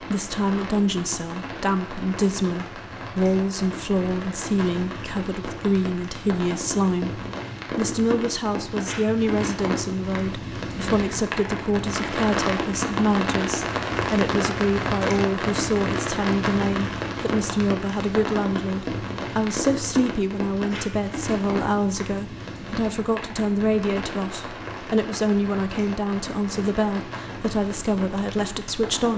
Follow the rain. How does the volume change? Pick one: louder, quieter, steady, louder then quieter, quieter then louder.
louder then quieter.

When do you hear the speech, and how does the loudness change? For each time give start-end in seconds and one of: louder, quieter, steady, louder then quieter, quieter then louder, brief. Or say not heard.
0.0-29.1 steady.